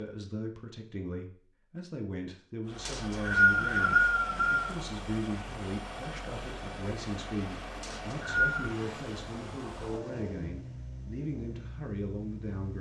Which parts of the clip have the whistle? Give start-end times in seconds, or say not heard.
2.9-4.8, 7.8-8.7.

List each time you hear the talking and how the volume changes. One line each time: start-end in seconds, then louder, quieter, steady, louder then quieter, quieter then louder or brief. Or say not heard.
0.0-12.7 steady.